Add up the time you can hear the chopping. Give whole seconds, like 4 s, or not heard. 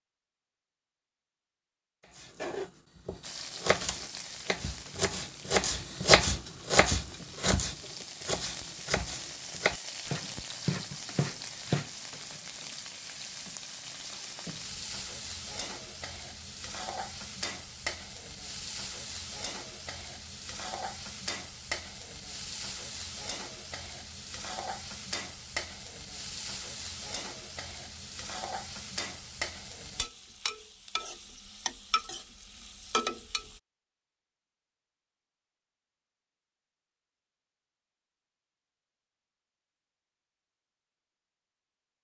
10 s.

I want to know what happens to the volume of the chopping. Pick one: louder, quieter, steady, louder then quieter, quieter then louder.
louder then quieter.